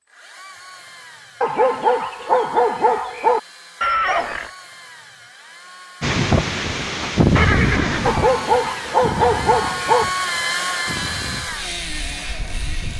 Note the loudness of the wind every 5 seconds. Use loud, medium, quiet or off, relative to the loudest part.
off, loud, quiet.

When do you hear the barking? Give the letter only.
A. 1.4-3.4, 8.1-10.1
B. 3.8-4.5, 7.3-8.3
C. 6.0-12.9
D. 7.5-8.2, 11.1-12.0
A.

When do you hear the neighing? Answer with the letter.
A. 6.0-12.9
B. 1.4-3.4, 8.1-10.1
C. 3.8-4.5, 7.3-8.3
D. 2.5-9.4
C.